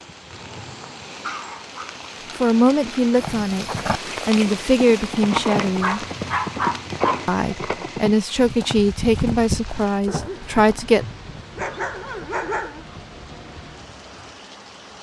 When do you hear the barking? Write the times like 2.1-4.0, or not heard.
0.1-1.9, 5.8-7.3, 10.1-12.8.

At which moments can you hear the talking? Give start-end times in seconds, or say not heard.
2.4-3.6, 4.2-6.0, 7.2-11.1.